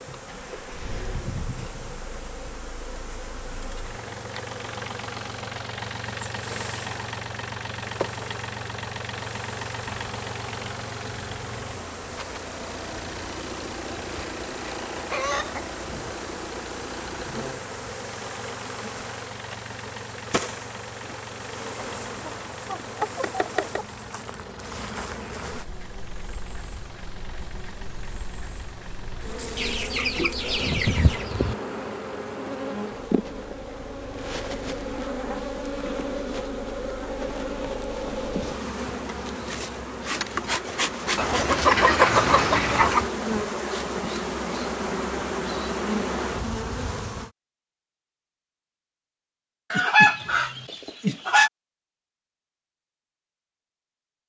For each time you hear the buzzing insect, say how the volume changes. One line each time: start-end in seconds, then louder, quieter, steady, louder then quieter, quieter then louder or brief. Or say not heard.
0.0-47.3 louder.